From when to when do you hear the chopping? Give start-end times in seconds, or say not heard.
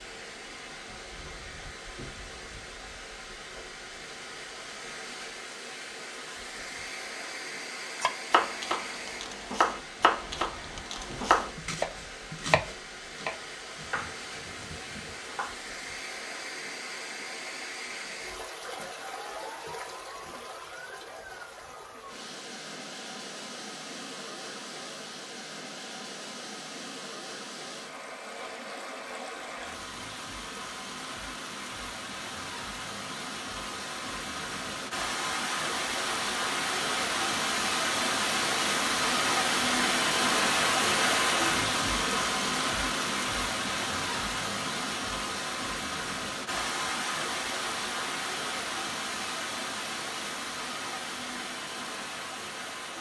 8.0-15.6.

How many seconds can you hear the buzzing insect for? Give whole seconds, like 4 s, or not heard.
not heard.